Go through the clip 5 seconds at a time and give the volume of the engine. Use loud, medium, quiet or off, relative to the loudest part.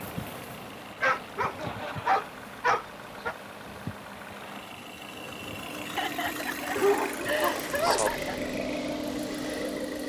medium, loud.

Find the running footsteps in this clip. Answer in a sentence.
The running footsteps can't be heard in this clip.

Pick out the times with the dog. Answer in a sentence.
You can hear the dog from 1.0 to 3.4 s and from 6.8 to 8.1 s.